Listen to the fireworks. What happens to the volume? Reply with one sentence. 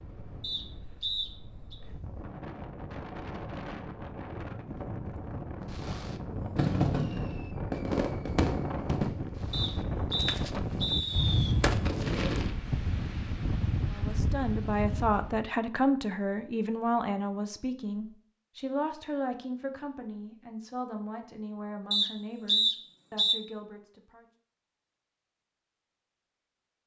The volume of the fireworks goes down, then up.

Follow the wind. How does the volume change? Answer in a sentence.
The volume of the wind goes up.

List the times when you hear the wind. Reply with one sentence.
You can hear the wind from 0.0 to 15.5 s.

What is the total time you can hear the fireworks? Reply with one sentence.
The fireworks can be heard for 7 seconds in total.